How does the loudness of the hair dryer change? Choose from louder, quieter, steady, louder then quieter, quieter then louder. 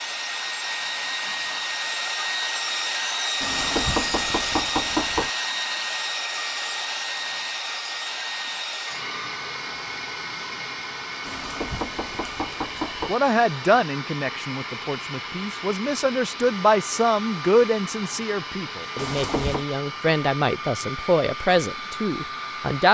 quieter.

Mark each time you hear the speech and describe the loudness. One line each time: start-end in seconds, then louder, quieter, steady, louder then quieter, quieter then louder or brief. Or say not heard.
13.1-22.8 steady.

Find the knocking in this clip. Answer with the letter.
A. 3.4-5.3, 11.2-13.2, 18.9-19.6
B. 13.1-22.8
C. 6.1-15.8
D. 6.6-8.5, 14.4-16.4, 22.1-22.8
A.